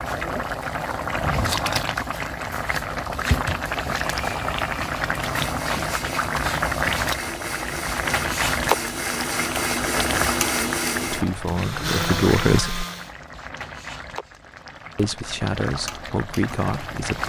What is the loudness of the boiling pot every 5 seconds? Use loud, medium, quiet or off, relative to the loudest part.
loud, loud, medium, medium.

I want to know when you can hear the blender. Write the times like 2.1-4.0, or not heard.
4.0-13.2.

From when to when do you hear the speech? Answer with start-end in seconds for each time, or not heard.
11.1-12.8, 14.9-17.2.